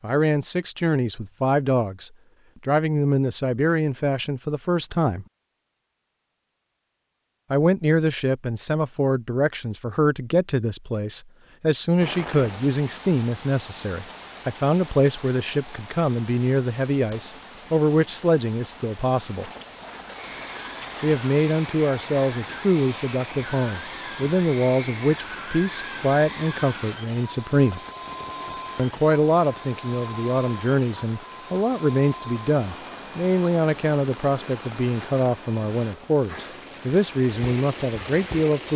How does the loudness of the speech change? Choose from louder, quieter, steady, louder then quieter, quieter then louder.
steady.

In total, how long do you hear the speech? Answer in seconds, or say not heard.
34 s.